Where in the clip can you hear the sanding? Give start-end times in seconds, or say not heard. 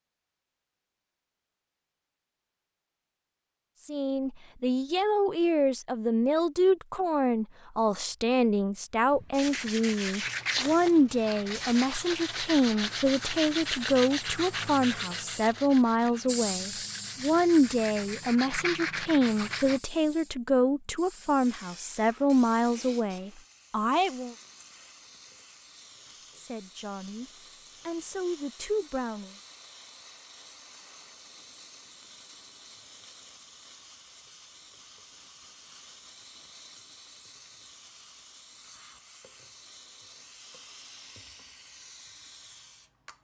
9.3-19.8.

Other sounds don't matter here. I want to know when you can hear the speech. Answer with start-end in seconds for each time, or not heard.
3.9-24.4, 26.3-29.4.